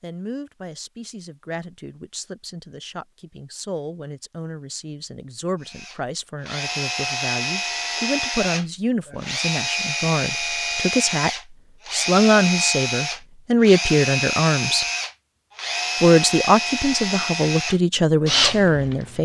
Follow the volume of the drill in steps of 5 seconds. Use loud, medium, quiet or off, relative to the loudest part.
off, loud, loud, loud.